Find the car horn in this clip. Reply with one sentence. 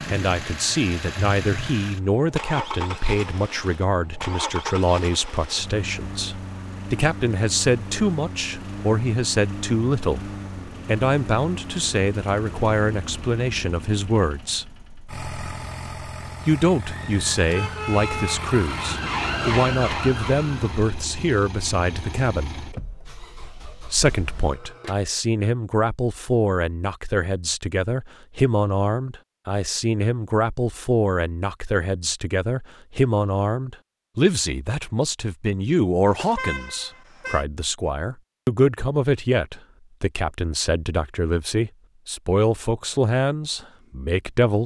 You can hear the car horn from 1.4 to 1.8 s, from 17.4 to 18.5 s and from 36.0 to 37.5 s.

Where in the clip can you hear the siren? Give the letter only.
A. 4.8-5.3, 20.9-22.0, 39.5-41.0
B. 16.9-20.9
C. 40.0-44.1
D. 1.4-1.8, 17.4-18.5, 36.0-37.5
B.